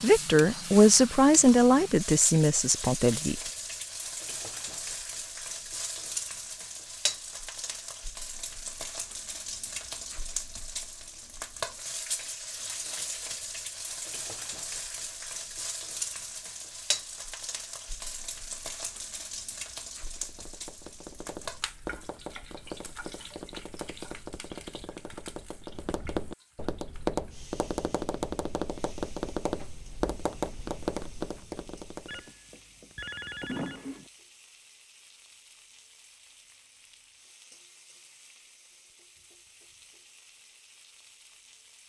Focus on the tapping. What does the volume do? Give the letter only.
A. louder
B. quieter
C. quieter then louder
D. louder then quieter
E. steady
A.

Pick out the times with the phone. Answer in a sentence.
You can hear the phone from 32.0 to 34.1 s.